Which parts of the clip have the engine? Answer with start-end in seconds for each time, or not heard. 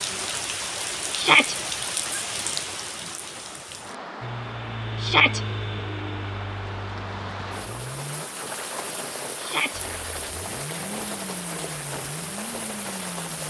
4.2-8.2, 9.8-13.4.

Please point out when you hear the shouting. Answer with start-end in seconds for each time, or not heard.
1.1-1.6, 5.0-5.4, 9.3-9.8.